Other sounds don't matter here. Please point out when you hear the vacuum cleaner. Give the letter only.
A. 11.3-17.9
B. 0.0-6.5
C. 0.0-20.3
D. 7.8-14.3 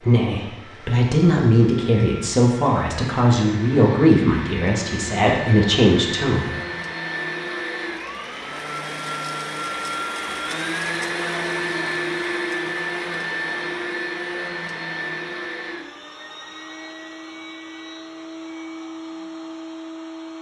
C.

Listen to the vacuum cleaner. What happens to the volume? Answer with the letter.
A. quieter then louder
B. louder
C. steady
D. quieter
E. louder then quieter
E.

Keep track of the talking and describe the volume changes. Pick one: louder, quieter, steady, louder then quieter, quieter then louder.
steady.